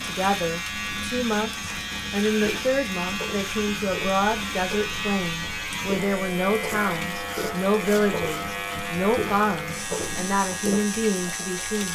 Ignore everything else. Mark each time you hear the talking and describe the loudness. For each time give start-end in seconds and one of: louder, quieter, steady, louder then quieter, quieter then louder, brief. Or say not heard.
0.0-11.9 steady.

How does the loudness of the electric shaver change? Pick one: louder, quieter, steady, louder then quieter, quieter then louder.
steady.